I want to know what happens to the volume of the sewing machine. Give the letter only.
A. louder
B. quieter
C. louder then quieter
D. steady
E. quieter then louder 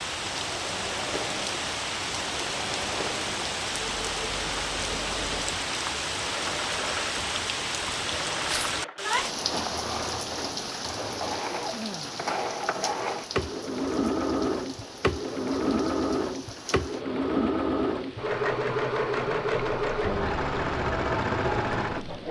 A.